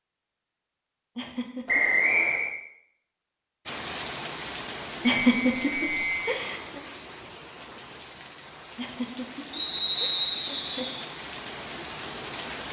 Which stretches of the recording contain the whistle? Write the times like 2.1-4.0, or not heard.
1.6-2.5, 5.2-6.2, 9.5-11.0.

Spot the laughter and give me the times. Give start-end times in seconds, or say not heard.
1.1-1.8, 5.0-6.8, 8.8-10.8.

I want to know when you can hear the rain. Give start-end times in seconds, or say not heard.
3.6-12.6.